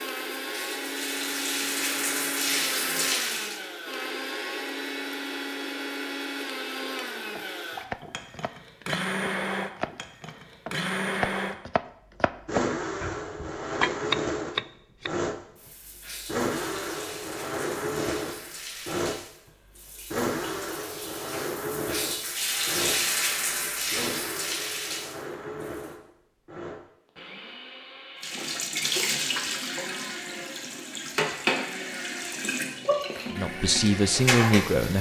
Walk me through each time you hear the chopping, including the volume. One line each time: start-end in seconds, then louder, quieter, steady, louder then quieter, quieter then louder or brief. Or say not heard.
7.3-15.1 louder.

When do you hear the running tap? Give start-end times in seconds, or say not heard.
0.0-3.6, 15.3-25.9, 28.2-34.9.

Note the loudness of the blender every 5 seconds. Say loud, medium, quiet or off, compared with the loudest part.
loud, loud, loud, loud, loud, medium, medium.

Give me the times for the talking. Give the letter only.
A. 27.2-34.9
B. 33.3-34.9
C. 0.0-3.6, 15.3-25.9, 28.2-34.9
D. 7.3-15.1
B.